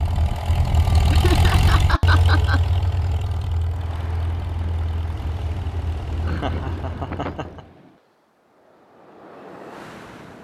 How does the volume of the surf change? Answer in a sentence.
The volume of the surf goes down, then up.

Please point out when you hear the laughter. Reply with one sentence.
You can hear the laughter from 1.1 to 2.6 s and from 6.2 to 7.7 s.